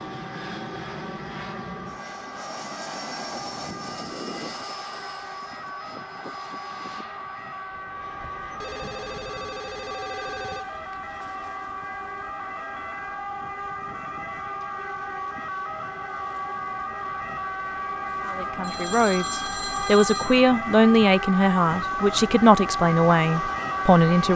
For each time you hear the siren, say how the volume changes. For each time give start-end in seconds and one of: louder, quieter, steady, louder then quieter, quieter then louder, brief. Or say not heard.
0.0-24.3 louder.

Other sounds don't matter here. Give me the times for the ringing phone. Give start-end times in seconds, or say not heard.
4.0-5.2, 8.5-11.0, 18.6-20.4.